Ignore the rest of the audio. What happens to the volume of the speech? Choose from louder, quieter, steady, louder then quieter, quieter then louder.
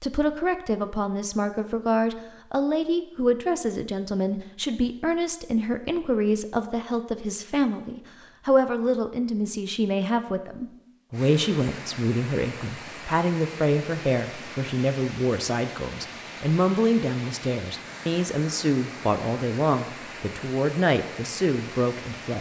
steady.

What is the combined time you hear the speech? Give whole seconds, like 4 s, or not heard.
22 s.